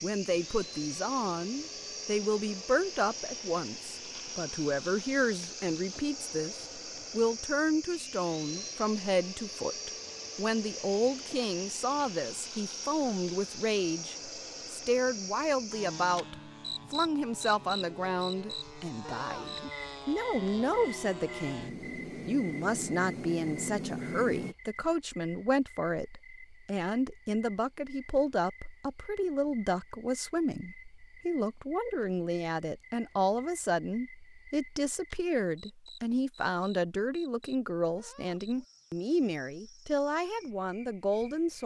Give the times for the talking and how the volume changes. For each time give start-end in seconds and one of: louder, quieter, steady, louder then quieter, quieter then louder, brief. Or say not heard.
0.0-41.6 steady.